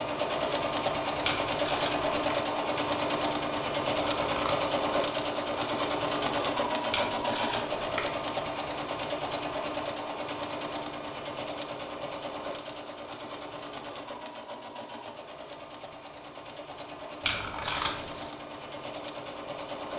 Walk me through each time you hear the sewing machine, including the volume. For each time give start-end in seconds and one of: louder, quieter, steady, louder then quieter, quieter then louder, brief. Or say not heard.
0.0-19.9 quieter.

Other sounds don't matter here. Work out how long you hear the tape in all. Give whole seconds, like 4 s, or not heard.
3 s.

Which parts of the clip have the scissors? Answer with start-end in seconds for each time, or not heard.
4.1-4.7, 17.2-18.3.